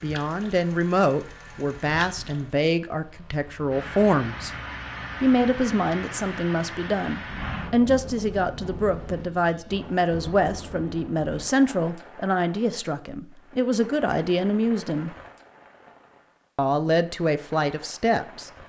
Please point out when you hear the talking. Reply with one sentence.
You can hear the talking from 0.0 to 4.5 s, from 5.2 to 15.2 s and from 16.6 to 18.5 s.